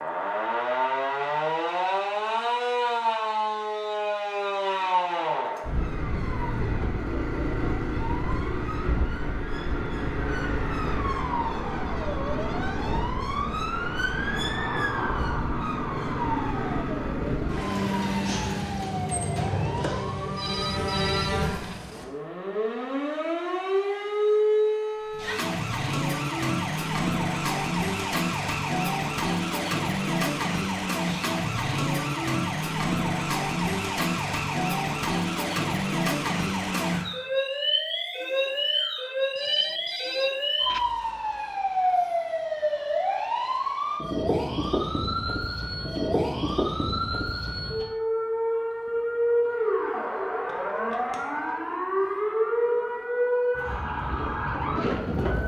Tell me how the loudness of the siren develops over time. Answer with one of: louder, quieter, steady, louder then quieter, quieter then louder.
steady.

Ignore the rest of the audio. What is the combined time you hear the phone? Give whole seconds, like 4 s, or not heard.
3 s.